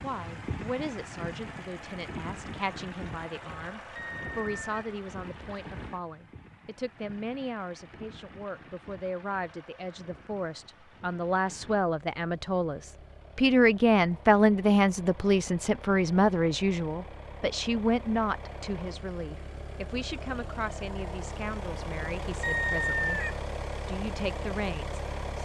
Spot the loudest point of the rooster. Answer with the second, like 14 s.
23 s.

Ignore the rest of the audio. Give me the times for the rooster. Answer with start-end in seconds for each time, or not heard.
4.0-4.7, 22.4-23.4.